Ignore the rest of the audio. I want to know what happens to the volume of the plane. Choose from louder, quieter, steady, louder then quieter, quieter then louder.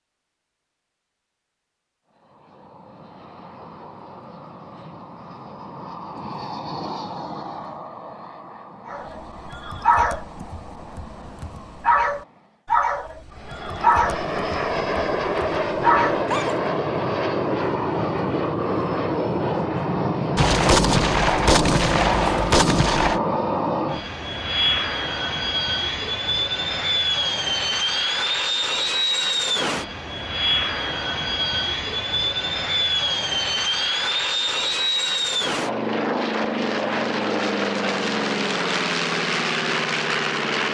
louder.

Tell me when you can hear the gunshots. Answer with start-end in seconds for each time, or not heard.
20.4-23.2.